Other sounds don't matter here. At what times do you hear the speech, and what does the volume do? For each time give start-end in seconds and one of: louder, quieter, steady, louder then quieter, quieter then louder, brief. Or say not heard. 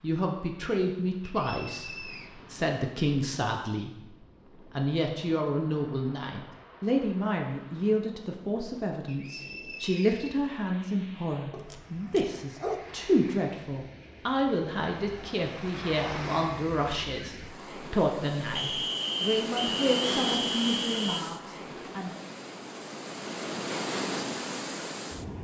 0.0-4.0 quieter then louder
4.8-22.1 steady.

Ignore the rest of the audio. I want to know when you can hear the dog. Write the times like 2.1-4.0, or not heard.
11.5-12.9.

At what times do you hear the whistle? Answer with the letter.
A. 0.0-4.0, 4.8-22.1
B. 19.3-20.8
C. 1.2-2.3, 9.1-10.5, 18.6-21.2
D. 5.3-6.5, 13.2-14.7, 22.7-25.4
C.